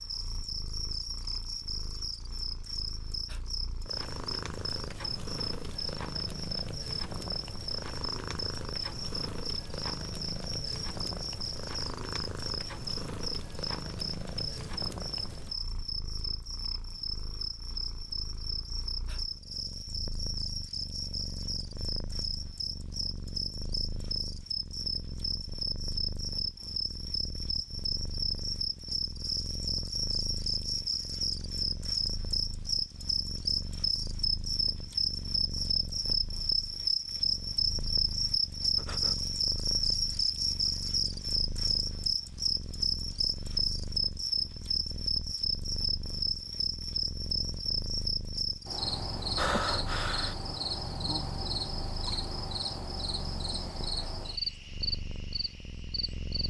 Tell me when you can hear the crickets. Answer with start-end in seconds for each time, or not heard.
0.0-56.4.